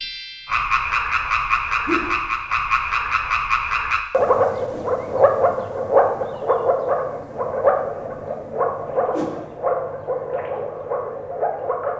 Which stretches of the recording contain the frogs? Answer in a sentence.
You can hear the frogs from 0.0 to 11.9 s.